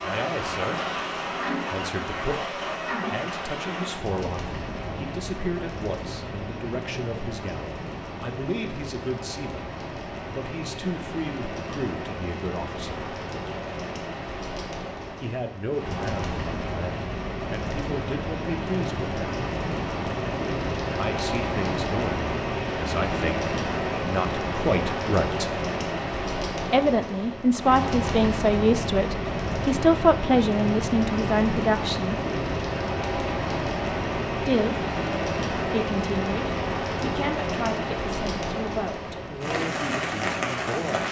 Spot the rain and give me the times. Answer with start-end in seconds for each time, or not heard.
0.0-41.0.